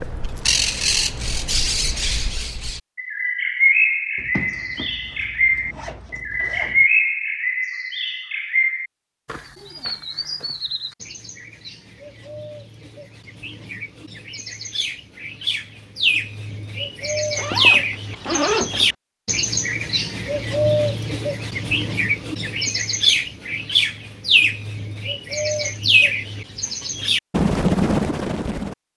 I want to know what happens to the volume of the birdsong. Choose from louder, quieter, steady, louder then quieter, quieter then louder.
quieter then louder.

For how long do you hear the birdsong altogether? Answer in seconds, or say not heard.
29 s.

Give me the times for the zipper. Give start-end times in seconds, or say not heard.
4.2-6.8, 17.4-18.9.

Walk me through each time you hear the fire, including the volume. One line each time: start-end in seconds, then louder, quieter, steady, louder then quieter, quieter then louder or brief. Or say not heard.
not heard.